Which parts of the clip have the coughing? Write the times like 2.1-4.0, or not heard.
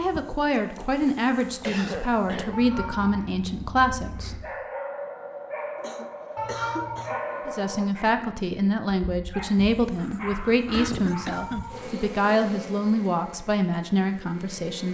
1.6-2.6, 5.8-7.4, 10.7-11.8.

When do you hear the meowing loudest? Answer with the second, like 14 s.
7 s.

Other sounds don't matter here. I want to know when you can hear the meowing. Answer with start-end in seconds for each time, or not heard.
2.5-3.3, 6.3-7.1, 11.1-11.8.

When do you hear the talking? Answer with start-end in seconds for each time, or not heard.
0.0-4.4, 7.5-14.8.